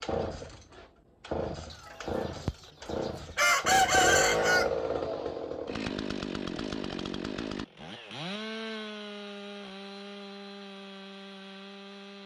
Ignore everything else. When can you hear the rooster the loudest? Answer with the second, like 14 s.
4 s.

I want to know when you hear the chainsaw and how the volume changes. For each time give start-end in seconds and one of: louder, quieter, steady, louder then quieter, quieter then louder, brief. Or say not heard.
0.0-12.2 louder then quieter.